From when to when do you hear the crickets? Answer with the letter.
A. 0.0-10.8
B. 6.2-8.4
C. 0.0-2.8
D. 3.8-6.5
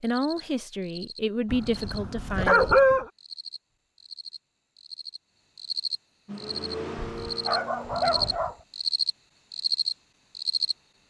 A.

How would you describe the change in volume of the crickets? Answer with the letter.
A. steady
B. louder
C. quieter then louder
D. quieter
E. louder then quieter
B.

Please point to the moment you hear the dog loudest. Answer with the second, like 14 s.
3 s.